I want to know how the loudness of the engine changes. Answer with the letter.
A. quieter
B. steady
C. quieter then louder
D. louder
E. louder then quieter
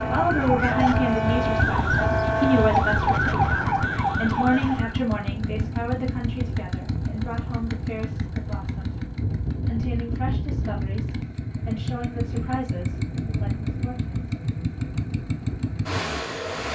B.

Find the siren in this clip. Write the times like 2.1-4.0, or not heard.
0.0-5.0.